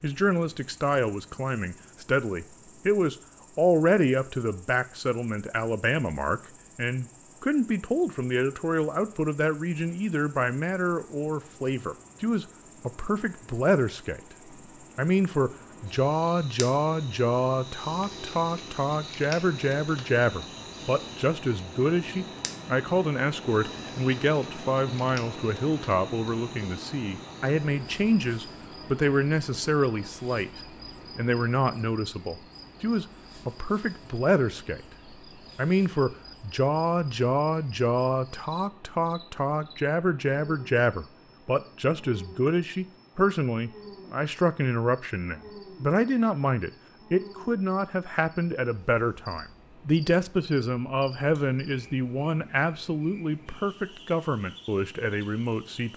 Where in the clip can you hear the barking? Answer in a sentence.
You can't hear the barking here.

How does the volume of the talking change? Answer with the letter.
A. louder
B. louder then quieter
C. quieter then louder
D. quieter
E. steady
E.